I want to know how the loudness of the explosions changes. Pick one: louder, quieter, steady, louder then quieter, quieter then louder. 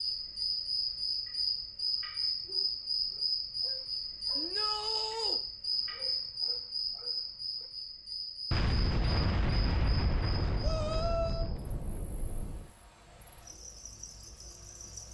quieter.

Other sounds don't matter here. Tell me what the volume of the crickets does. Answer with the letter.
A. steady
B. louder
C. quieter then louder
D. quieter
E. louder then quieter
D.